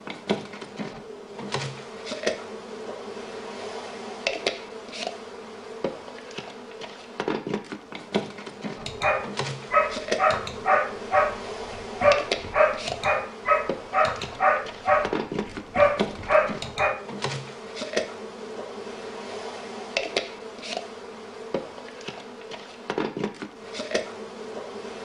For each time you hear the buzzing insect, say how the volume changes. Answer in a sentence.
The buzzing insect can be heard from 0.0 to 24.9 s, at a steady volume.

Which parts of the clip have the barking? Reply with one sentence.
You can hear the barking from 8.8 to 16.9 s.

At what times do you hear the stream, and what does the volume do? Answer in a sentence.
The stream can't be heard in this clip.